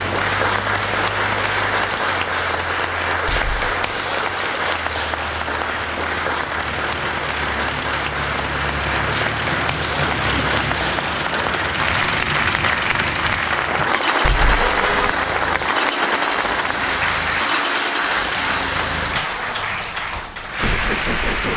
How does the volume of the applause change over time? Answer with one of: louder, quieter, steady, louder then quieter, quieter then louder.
steady.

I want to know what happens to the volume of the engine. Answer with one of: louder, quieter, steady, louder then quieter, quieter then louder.
louder.